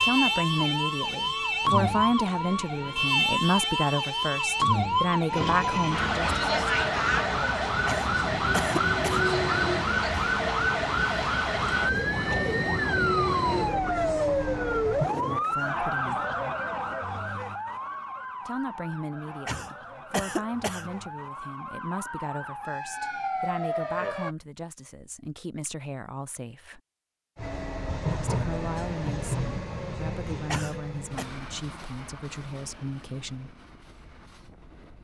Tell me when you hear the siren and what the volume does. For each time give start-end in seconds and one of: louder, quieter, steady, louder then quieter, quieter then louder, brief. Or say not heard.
0.0-24.4 quieter.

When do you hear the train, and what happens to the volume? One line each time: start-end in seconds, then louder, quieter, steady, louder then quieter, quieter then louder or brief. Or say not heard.
5.3-15.1 steady
27.4-35.0 quieter.